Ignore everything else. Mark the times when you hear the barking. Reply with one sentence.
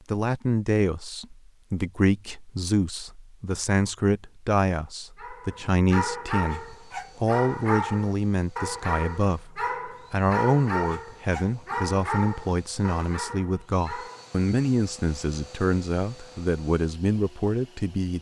You can hear the barking from 5.2 to 14.3 s.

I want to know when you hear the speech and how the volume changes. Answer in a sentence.
You can hear the speech from 0.1 to 18.1 s, at a steady volume.